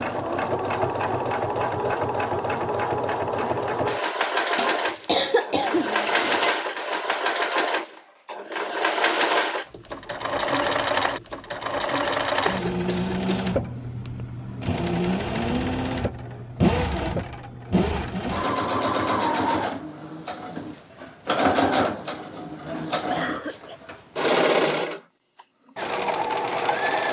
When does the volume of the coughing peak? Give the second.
5 s.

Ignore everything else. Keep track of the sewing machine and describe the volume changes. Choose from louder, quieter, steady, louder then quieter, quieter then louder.
steady.